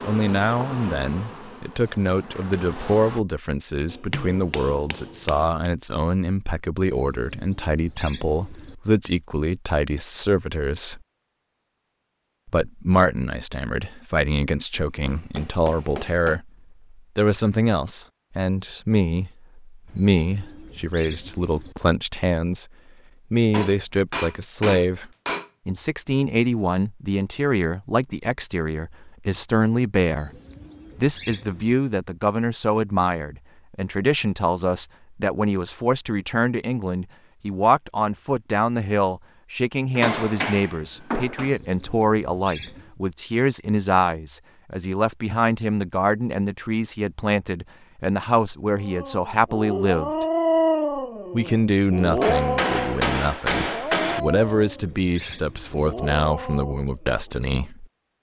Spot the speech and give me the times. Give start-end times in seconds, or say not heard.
0.0-11.0, 12.4-22.6, 23.3-30.3, 30.9-50.2, 51.3-57.9.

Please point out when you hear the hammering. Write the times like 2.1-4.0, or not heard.
3.9-5.7, 14.7-16.4, 23.5-25.5, 40.0-41.5, 52.2-54.2.